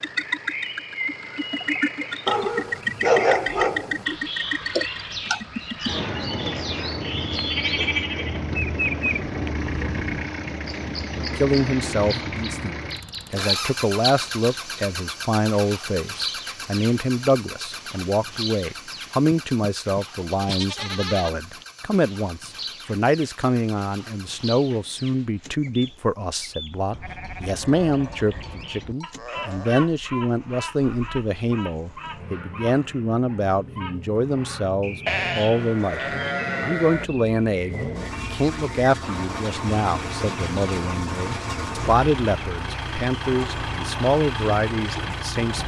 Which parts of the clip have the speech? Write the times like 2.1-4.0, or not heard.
11.3-45.6.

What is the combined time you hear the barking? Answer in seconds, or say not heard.
2 s.